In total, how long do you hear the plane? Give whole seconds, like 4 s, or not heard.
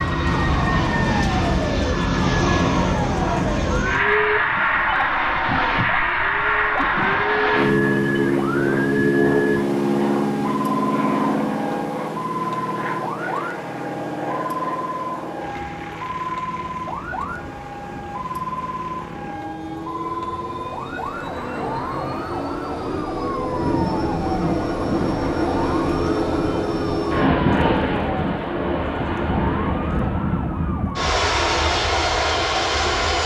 33 s.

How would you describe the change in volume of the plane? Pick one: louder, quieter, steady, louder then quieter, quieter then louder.
quieter then louder.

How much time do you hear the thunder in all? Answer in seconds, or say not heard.
2 s.